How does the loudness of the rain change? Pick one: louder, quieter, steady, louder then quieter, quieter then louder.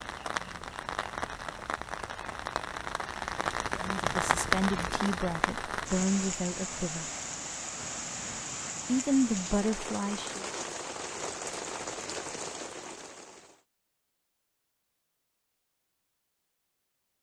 louder then quieter.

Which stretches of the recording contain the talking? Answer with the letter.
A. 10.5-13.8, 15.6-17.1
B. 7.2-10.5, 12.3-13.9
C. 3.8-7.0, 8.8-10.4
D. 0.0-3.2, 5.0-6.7
C.